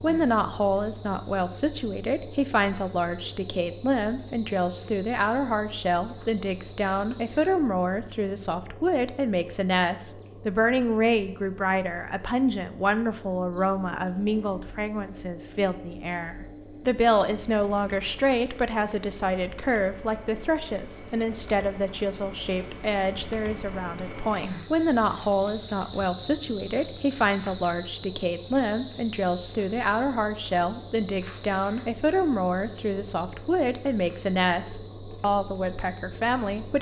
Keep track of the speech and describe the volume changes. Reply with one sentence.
The volume of the speech stays about the same.